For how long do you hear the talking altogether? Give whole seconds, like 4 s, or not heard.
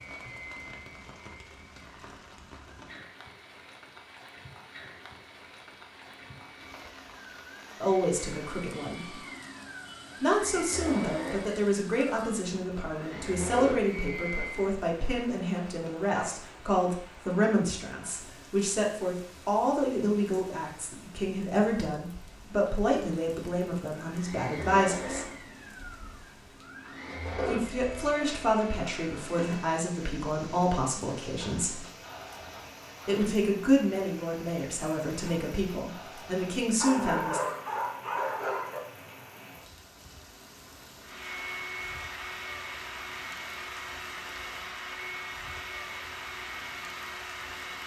25 s.